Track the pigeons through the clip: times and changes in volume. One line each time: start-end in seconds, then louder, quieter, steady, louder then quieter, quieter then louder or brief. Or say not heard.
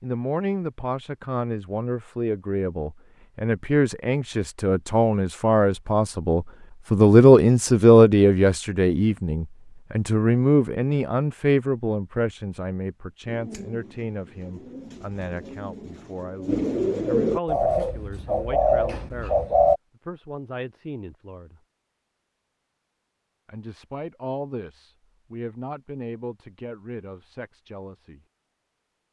13.2-19.8 louder.